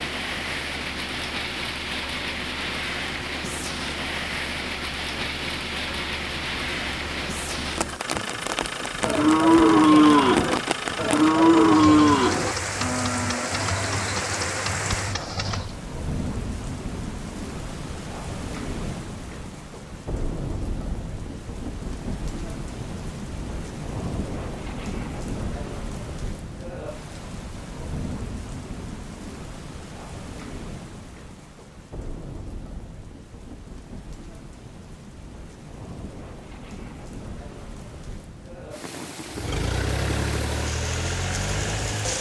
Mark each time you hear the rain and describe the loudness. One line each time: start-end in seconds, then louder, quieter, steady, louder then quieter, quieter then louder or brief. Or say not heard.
0.0-42.1 quieter.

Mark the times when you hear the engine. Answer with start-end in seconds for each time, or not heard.
0.0-15.8, 39.2-42.1.